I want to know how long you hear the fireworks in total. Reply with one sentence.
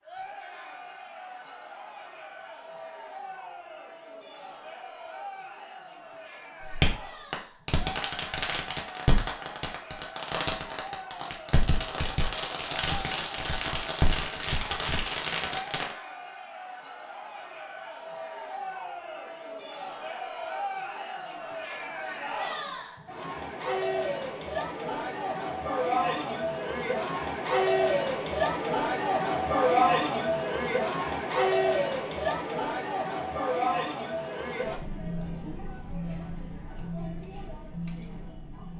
You can hear the fireworks for 9 seconds altogether.